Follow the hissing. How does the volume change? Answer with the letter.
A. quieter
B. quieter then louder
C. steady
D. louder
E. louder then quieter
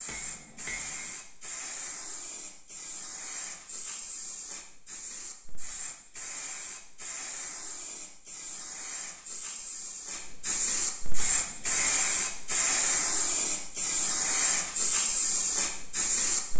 D.